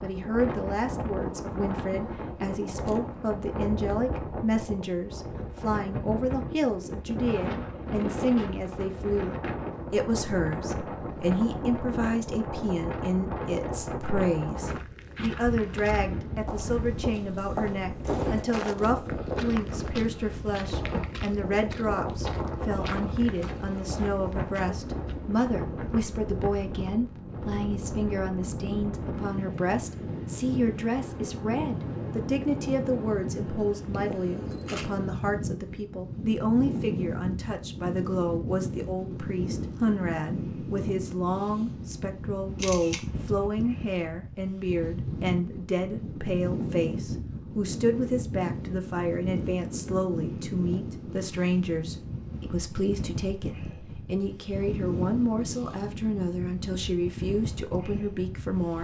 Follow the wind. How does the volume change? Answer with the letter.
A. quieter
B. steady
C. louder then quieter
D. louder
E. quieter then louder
B.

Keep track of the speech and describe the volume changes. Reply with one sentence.
The volume of the speech stays about the same.